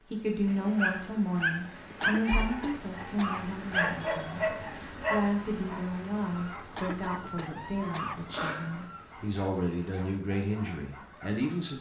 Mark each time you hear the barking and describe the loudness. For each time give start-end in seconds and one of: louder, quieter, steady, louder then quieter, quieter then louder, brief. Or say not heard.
0.5-11.7 quieter.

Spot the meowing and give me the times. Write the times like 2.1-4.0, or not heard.
1.9-2.8, 7.5-8.9.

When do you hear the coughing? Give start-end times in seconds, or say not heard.
2.0-3.6, 6.8-8.3.